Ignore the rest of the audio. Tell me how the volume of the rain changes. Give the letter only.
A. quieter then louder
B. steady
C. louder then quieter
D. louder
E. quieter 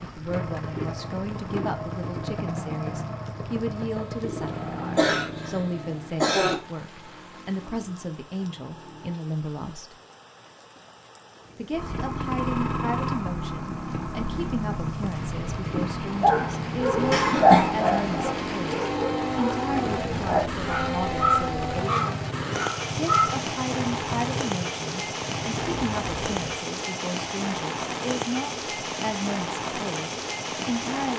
D.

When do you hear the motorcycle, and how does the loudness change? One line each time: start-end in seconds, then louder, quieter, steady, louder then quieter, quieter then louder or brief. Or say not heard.
0.0-9.2 quieter
11.7-26.6 quieter.